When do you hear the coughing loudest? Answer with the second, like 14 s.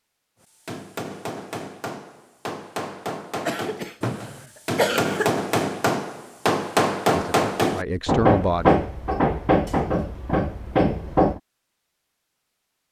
5 s.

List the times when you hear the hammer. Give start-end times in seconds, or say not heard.
0.7-11.4.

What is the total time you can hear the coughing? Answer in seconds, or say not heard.
2 s.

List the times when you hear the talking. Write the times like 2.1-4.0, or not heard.
7.1-8.7.